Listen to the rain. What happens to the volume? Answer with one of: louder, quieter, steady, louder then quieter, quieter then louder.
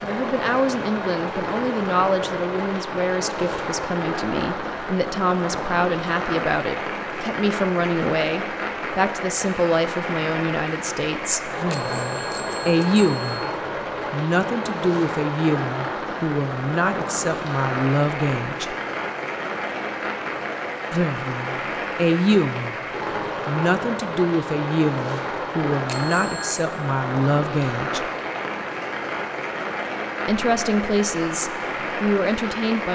steady.